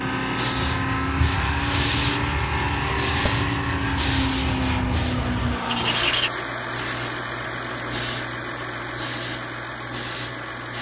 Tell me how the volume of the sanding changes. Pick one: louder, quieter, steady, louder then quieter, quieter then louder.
steady.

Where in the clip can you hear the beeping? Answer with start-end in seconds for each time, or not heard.
not heard.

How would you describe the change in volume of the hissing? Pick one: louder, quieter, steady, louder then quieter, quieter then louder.
quieter.